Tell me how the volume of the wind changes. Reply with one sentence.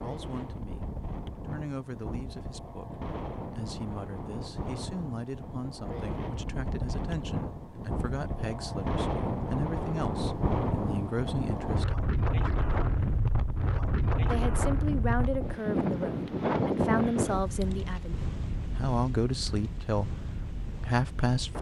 The loudness of the wind goes up, then down.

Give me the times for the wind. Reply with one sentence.
You can hear the wind from 0.0 to 21.5 s.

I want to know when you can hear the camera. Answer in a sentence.
You can't hear the camera here.